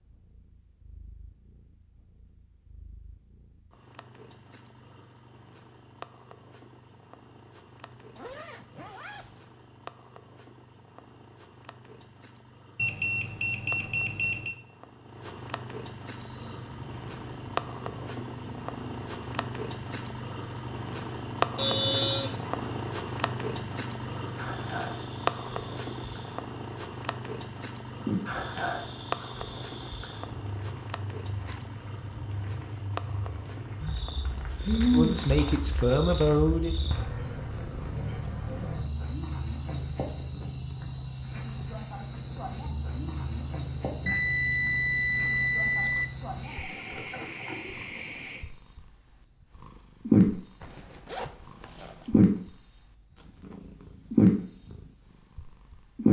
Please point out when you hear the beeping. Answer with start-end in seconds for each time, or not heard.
12.8-14.6, 21.6-22.6, 44.0-46.0.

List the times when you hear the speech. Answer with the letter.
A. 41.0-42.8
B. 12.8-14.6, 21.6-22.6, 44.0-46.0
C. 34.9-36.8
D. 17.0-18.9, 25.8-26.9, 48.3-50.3
C.